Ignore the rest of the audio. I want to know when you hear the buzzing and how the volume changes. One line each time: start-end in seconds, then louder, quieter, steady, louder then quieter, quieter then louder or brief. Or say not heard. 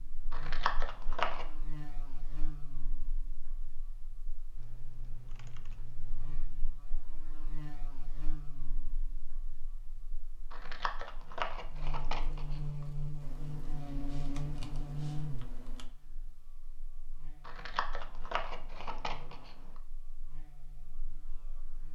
0.0-21.9 louder then quieter.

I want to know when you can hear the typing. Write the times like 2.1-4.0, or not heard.
4.5-6.4, 13.2-15.9.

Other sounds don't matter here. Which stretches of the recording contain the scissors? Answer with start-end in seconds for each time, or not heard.
0.3-1.4, 10.5-12.8, 17.4-19.7.